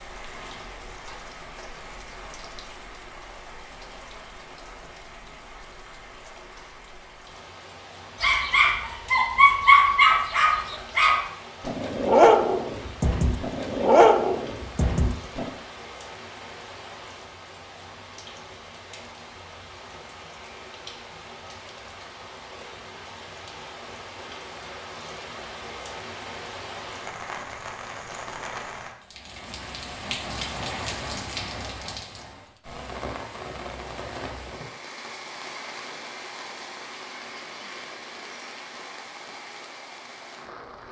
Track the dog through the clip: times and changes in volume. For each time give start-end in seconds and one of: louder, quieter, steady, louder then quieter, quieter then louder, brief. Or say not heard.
8.2-15.5 quieter then louder.